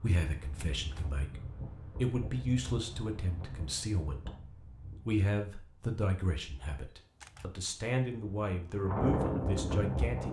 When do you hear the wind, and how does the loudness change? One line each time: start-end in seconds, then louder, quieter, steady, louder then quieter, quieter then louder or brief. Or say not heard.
0.0-10.2 quieter then louder.